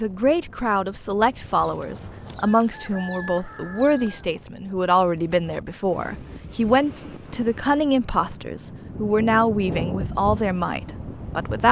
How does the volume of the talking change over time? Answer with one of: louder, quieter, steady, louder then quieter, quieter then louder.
steady.